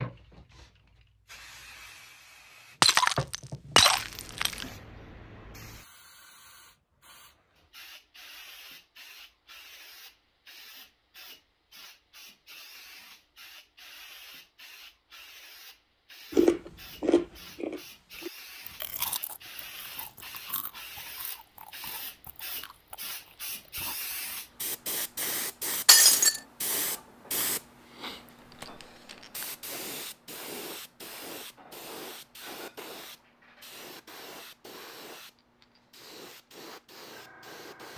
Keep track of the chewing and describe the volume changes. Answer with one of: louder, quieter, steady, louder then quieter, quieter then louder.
quieter.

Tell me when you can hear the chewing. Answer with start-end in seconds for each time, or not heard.
16.3-24.4.